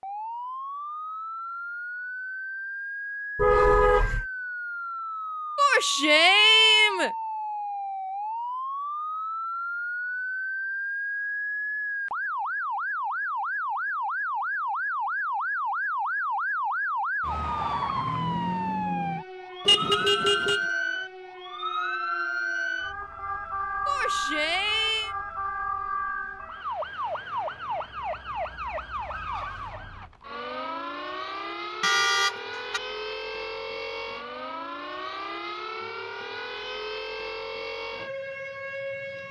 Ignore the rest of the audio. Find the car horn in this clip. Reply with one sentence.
The car horn can be heard from 3.4 to 4.2 s, from 19.6 to 20.6 s and from 31.8 to 32.8 s.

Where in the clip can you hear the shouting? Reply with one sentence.
You can hear the shouting from 5.5 to 7.1 s and from 23.9 to 25.1 s.